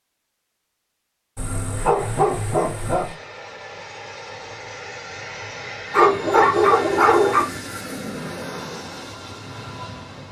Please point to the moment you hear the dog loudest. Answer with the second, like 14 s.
7 s.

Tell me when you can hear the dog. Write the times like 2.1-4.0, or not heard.
1.4-3.1, 5.9-7.5.